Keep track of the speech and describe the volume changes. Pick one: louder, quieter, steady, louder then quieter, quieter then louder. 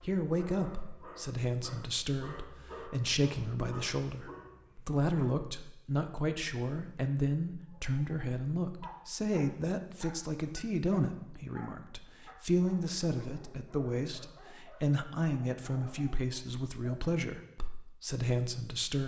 steady.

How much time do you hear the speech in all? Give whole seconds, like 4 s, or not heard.
19 s.